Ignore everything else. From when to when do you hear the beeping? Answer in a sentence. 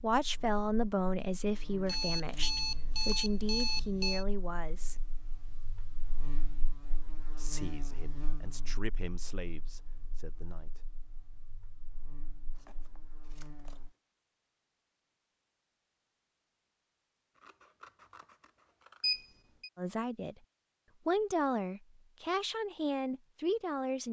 You can hear the beeping from 1.9 to 4.2 s and from 19.0 to 19.7 s.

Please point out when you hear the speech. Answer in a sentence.
The speech can be heard from 0.0 to 5.1 s, from 7.3 to 10.9 s, from 19.8 to 20.4 s and from 21.1 to 24.0 s.